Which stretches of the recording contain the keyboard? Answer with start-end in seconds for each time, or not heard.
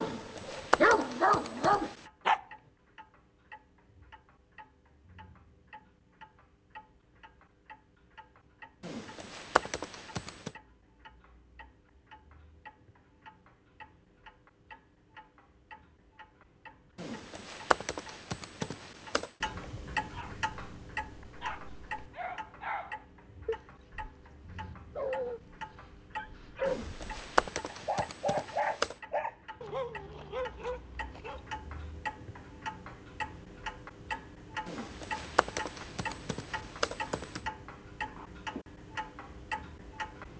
0.0-2.0, 8.8-10.5, 16.9-19.3, 26.6-28.9, 34.6-37.5.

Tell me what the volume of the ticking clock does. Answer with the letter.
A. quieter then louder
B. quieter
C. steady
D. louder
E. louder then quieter
D.